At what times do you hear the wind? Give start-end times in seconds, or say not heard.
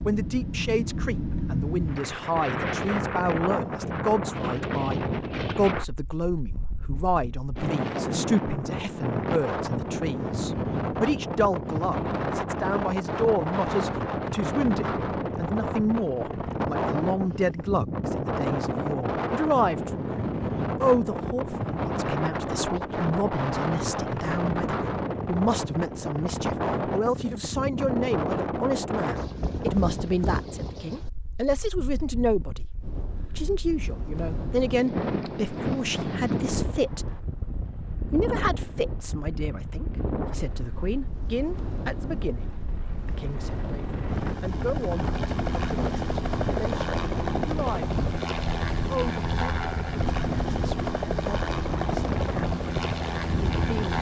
0.0-53.9.